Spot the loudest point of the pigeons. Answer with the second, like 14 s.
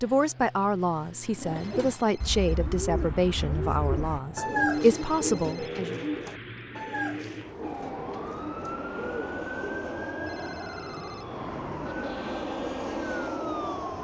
5 s.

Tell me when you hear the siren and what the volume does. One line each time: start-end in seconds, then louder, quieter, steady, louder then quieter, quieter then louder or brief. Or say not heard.
7.6-13.9 steady.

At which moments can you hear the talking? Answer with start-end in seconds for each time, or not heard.
0.0-6.0.